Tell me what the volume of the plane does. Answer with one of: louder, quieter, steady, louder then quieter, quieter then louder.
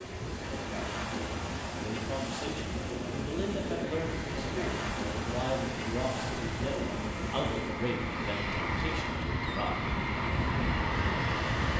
louder.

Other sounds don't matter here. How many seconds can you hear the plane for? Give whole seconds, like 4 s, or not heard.
8 s.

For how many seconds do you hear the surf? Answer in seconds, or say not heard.
12 s.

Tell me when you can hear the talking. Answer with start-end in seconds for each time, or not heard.
1.7-9.8.